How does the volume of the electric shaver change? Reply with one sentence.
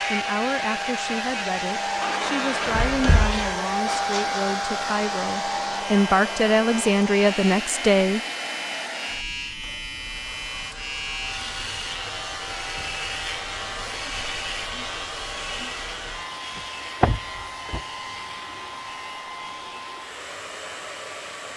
The loudness of the electric shaver goes down.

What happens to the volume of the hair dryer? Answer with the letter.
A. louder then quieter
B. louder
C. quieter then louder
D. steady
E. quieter
E.